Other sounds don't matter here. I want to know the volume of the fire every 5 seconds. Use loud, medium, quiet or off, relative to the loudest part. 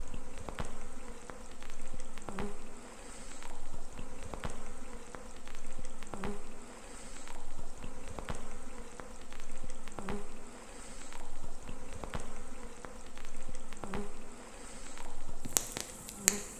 quiet, quiet, quiet, loud.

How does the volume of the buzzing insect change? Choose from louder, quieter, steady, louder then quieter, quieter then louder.
steady.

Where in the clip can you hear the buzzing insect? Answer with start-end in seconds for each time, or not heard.
0.0-16.5.